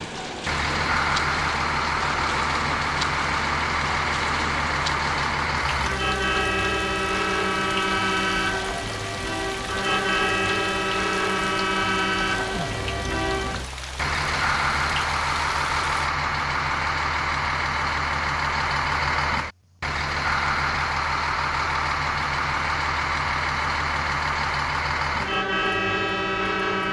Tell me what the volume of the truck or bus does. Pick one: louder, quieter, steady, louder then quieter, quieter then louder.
steady.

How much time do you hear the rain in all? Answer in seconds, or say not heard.
16 s.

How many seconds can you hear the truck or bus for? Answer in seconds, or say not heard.
27 s.